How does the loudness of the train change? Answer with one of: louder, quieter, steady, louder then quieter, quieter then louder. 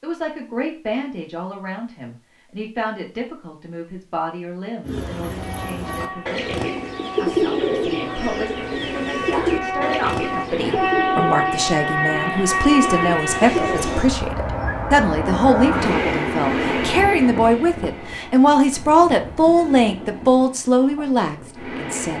louder then quieter.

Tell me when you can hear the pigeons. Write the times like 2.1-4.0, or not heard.
4.8-14.1.